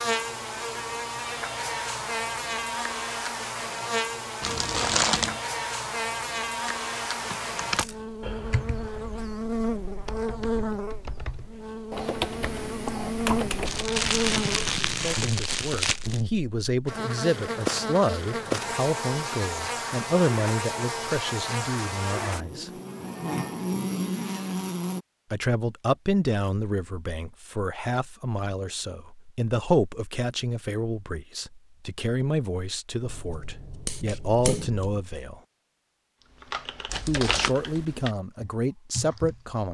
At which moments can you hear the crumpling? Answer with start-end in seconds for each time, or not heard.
4.4-5.4, 13.7-16.2, 36.9-37.5.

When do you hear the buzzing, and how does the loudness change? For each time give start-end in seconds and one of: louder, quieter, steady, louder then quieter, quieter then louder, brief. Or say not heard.
0.0-25.1 steady.